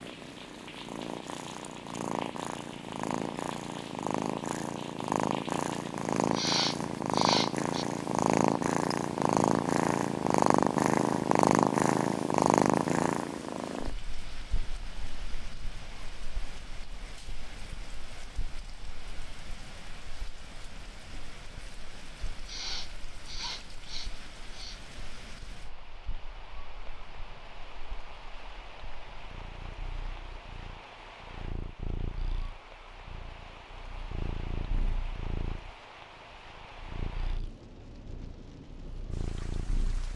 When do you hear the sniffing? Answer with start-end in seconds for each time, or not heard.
6.3-7.8, 22.4-24.8.